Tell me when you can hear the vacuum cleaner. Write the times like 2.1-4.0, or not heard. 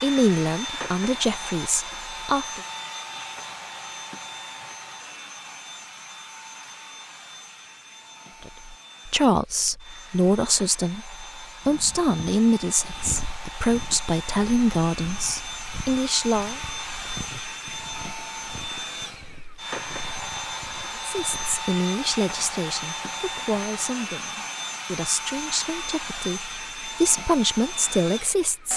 0.0-28.7.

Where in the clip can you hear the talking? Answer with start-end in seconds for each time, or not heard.
0.0-2.6, 8.4-16.6, 21.1-28.7.